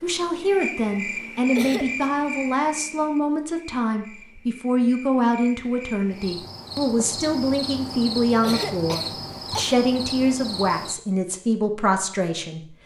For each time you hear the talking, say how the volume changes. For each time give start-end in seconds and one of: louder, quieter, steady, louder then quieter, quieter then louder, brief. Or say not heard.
0.0-12.8 steady.